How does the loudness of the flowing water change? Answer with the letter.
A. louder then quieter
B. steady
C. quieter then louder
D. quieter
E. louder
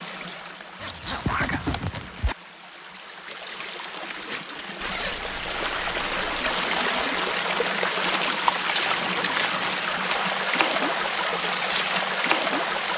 E.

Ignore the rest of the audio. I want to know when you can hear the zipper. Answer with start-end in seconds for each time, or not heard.
0.8-2.4, 4.8-6.5, 8.8-9.7.